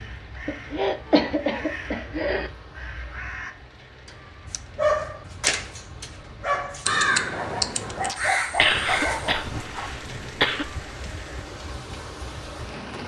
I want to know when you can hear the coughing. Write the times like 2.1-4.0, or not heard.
0.5-2.5, 8.6-10.7.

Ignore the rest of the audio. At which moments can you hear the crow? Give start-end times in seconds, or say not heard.
0.0-3.5, 6.8-9.7.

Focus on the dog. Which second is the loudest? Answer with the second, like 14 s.
5 s.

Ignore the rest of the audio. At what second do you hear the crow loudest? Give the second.
7 s.